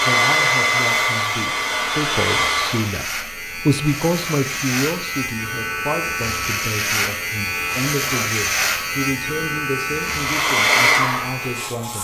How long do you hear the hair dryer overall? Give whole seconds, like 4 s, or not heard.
5 s.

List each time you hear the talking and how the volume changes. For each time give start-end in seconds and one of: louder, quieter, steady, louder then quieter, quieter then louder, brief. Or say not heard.
0.0-12.0 louder then quieter.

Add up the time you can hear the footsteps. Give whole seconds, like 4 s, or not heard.
not heard.